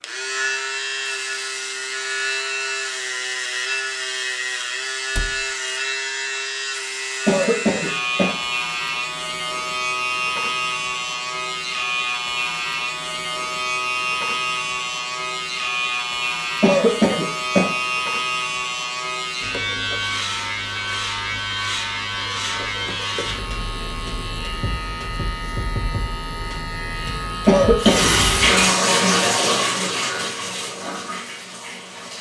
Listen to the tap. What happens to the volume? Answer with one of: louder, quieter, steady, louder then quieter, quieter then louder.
quieter.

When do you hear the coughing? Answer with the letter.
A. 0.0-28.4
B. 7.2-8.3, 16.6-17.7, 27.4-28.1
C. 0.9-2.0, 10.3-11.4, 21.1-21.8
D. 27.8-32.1
B.